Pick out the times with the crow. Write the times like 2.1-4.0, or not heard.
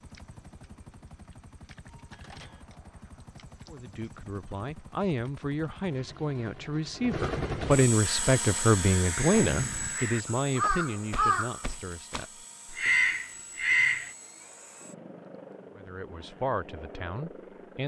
8.0-14.1.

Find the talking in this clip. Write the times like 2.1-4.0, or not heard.
3.7-12.9, 15.8-17.8.